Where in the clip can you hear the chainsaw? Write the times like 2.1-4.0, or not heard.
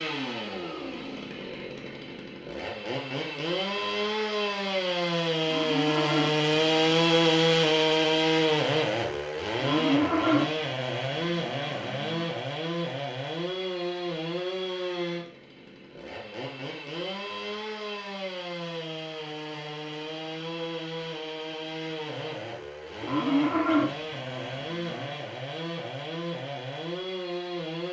0.0-27.8.